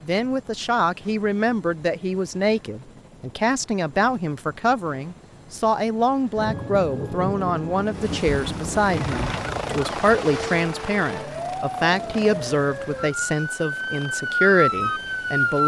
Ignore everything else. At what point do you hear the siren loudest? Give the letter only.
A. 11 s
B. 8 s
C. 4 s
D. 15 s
D.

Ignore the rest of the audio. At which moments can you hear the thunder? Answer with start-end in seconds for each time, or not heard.
6.3-9.8.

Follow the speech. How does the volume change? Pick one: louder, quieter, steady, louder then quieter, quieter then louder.
steady.